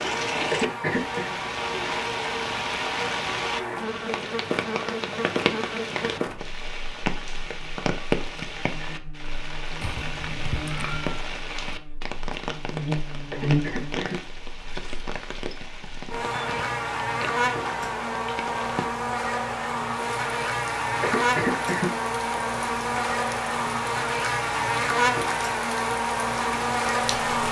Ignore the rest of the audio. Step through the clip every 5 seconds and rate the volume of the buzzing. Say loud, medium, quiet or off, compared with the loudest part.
medium, medium, medium, loud, loud, loud.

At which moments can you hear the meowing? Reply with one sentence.
The meowing can be heard from 9.8 to 11.2 s.